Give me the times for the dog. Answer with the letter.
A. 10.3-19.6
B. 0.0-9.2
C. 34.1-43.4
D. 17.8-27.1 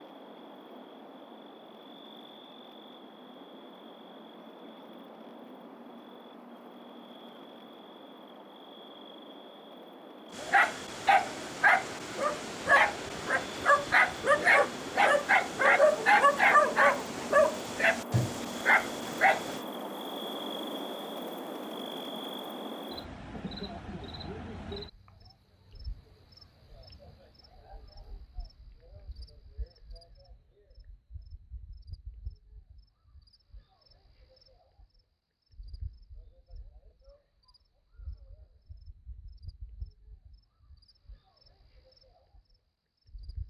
A.